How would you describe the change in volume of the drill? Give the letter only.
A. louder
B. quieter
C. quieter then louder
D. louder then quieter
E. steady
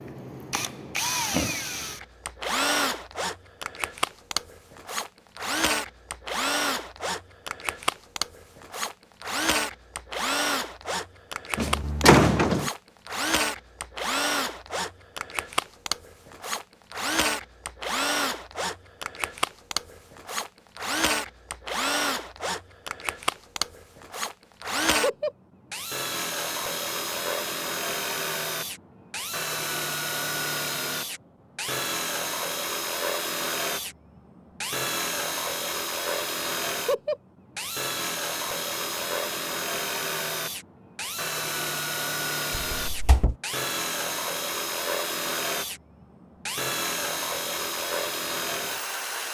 E.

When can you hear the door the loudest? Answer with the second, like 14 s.
12 s.